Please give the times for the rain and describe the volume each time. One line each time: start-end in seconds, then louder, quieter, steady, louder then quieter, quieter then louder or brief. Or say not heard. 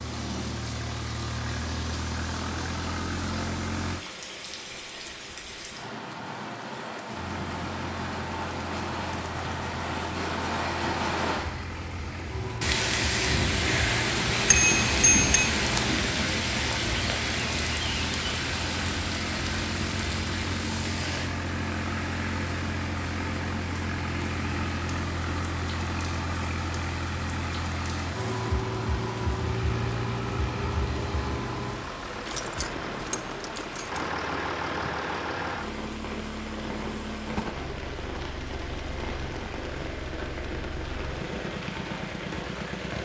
0.0-43.0 louder then quieter.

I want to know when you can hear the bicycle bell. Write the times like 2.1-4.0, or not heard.
14.4-15.5.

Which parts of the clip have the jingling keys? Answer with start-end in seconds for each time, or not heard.
32.2-34.1.